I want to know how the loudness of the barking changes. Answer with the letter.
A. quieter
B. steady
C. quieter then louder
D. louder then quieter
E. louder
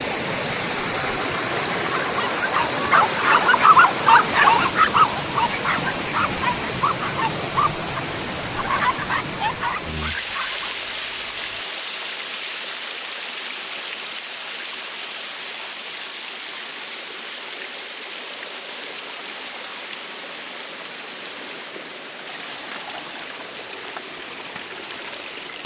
A.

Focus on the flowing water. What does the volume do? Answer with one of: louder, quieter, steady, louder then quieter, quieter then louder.
quieter.